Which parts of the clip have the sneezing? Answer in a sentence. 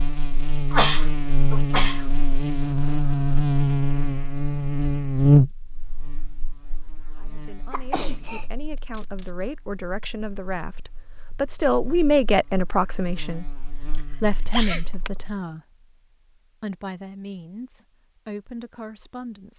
The sneezing can be heard from 0.7 to 2.0 s, from 7.7 to 8.4 s and from 14.5 to 15.1 s.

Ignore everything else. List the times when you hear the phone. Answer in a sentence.
The phone can't be heard in this clip.